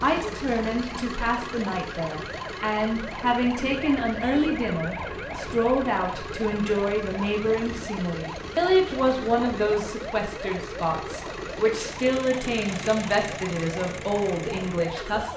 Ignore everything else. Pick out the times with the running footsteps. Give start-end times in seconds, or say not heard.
not heard.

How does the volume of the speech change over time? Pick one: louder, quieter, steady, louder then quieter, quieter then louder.
steady.